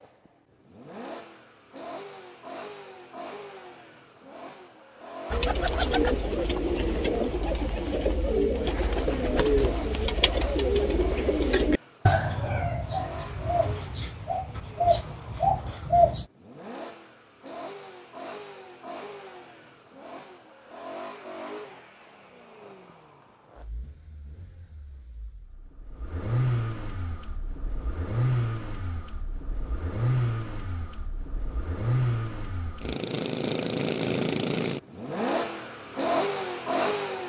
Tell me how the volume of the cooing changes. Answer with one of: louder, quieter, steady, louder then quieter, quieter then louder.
steady.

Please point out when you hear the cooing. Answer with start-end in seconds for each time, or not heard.
5.3-16.2.